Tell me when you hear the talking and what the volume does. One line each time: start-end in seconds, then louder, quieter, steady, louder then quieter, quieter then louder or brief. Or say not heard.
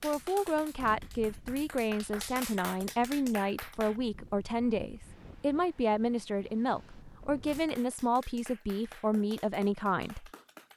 0.0-10.7 steady.